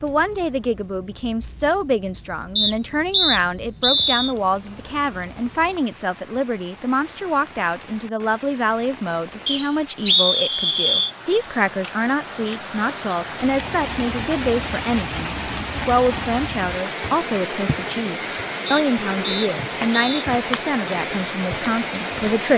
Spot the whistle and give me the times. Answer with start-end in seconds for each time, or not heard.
2.5-4.3, 9.4-11.1, 18.6-20.2.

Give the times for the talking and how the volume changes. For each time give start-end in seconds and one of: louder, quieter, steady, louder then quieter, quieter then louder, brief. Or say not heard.
0.0-22.5 steady.